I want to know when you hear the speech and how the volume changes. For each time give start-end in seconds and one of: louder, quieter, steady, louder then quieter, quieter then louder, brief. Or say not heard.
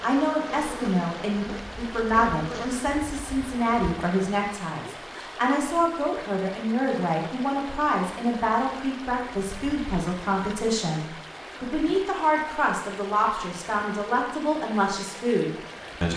0.0-16.1 steady.